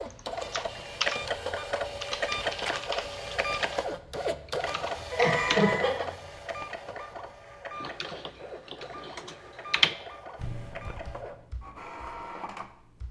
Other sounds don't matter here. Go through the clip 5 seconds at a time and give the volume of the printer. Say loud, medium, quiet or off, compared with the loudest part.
loud, medium, medium.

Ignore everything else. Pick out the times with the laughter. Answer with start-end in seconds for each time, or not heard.
5.1-6.0.